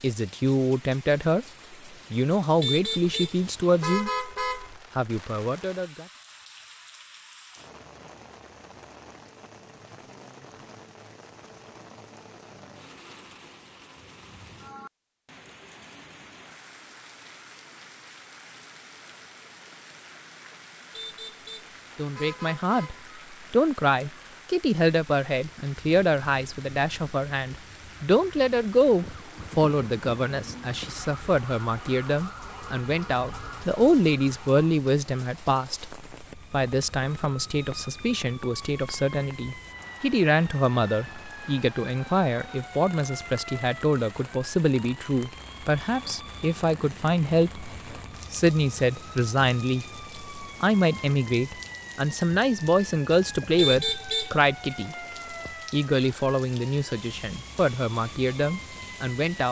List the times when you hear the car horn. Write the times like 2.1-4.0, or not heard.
2.6-4.8, 20.9-23.1, 53.5-54.5.